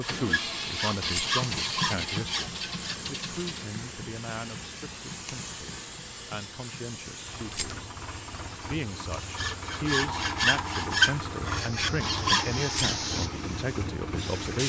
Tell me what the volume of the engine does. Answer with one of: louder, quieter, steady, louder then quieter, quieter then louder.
quieter then louder.